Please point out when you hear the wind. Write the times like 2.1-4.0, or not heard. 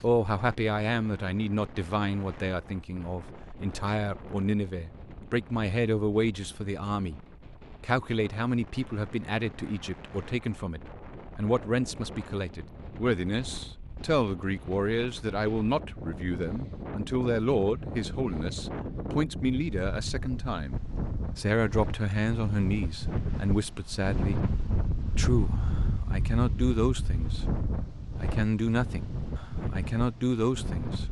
0.0-31.0.